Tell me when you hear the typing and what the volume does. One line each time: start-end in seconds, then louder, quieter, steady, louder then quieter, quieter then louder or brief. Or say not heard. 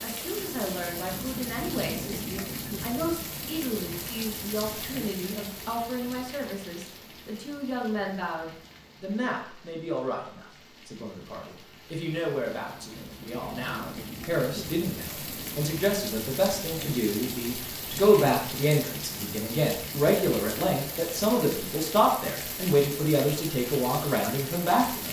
not heard.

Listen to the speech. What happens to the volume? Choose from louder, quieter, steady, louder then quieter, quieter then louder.
louder.